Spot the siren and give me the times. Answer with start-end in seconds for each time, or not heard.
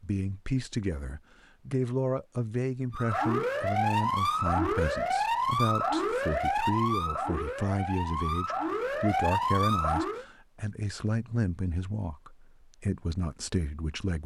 2.9-10.2.